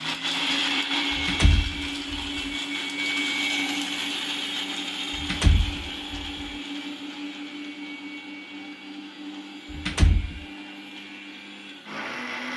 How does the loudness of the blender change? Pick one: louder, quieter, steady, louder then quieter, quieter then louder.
quieter.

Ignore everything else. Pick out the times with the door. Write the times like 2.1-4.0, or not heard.
1.1-2.4, 5.2-6.3, 9.7-10.4.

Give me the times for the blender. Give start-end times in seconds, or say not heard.
0.0-12.5.